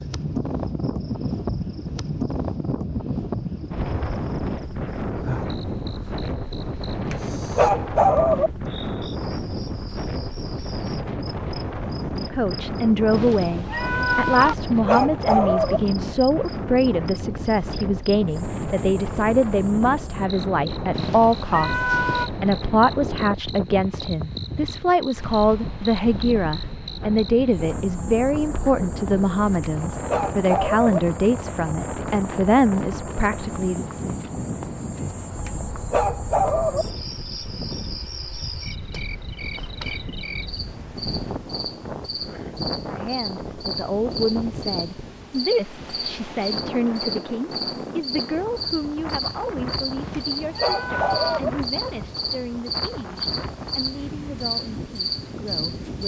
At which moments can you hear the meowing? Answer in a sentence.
You can hear the meowing from 13.1 to 14.6 s, from 20.9 to 22.3 s and from 50.0 to 51.4 s.